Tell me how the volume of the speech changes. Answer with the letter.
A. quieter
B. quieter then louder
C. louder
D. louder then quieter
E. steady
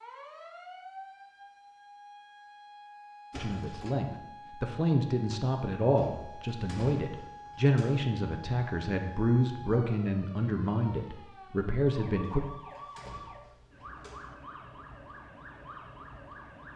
E.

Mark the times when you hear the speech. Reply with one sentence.
You can hear the speech from 3.4 to 12.4 s.